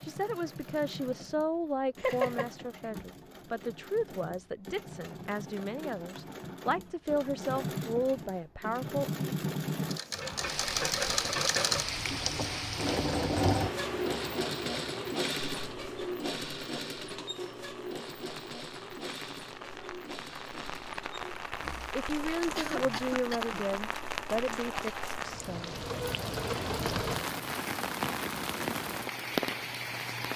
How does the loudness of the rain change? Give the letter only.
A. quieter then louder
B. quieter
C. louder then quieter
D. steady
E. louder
A.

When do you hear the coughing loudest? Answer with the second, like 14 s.
2 s.